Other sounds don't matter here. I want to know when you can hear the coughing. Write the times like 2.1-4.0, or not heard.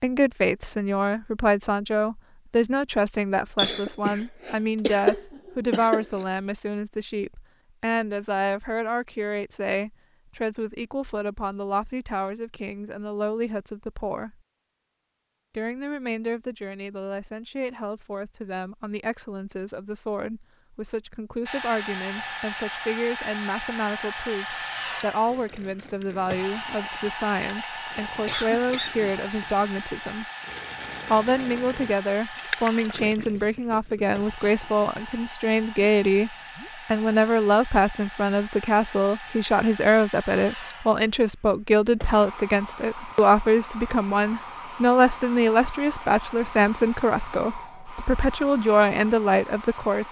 3.5-6.2, 28.2-29.4.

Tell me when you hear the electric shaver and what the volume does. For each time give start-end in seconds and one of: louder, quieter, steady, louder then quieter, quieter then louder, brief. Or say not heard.
not heard.